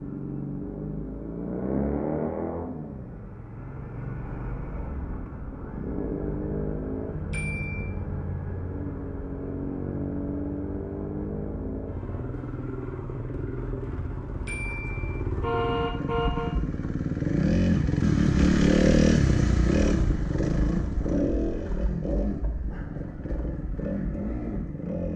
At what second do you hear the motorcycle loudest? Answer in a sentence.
The loudest moment of the motorcycle is at 19 seconds.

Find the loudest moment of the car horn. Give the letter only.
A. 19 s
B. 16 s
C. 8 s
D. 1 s
B.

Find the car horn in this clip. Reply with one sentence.
The car horn can be heard from 7.3 to 7.9 s and from 14.4 to 16.6 s.